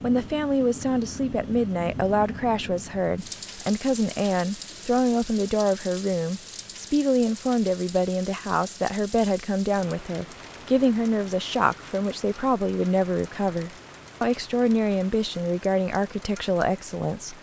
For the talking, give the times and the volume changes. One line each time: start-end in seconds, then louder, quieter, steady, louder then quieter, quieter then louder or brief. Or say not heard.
0.0-17.3 steady.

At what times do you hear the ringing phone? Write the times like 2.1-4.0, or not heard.
not heard.